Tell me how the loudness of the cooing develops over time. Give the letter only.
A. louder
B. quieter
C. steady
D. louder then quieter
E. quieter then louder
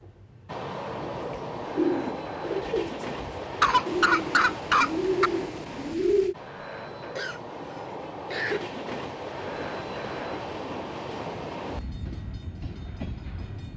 E.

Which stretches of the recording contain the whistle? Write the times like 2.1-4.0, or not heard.
not heard.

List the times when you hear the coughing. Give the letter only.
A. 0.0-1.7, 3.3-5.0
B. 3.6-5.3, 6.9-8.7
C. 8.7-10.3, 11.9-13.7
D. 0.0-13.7
B.